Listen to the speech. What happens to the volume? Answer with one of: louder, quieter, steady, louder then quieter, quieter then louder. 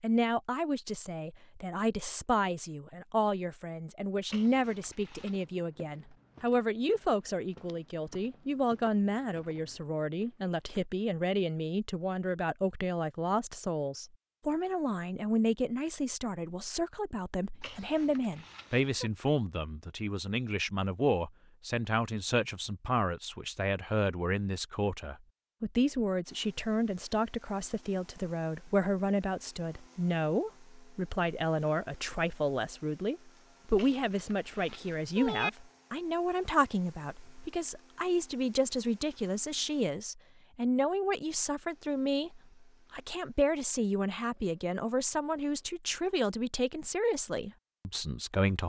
steady.